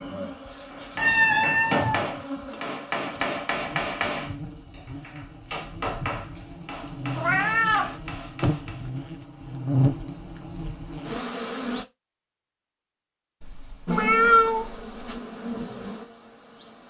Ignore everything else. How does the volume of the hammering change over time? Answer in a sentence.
The loudness of the hammering goes down.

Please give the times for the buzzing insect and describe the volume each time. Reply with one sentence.
You can hear the buzzing insect from 0.0 to 11.8 s, getting louder; and briefly from 13.8 to 16.8 s.